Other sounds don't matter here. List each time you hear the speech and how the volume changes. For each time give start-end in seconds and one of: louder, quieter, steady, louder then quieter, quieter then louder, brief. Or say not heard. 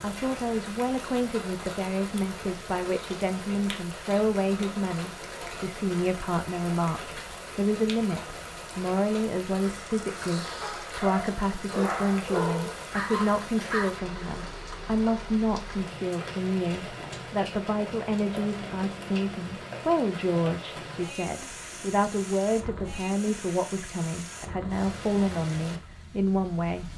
0.0-26.9 steady.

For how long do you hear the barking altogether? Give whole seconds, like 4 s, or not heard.
3 s.